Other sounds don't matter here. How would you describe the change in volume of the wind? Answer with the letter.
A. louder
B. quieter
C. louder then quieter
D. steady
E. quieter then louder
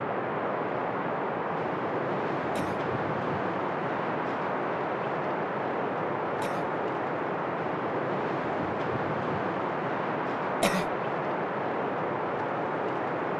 D.